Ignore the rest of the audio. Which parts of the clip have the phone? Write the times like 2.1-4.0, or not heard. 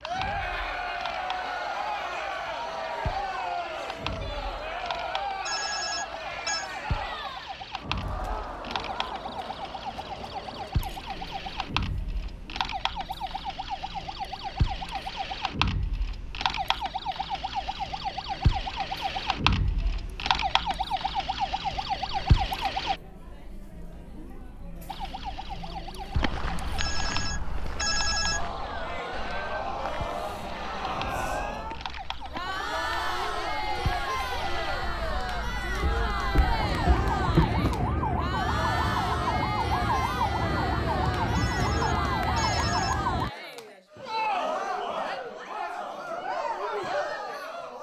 5.5-6.7, 26.8-28.4, 41.3-43.0.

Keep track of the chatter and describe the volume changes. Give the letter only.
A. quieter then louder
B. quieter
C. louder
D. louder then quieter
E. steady
A.